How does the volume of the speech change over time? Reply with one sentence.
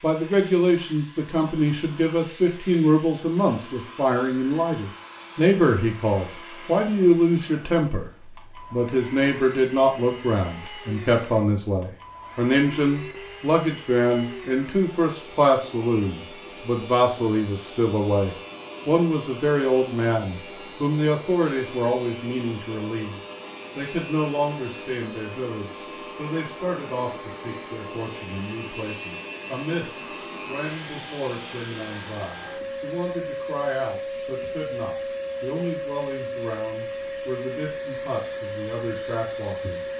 The volume of the speech goes down.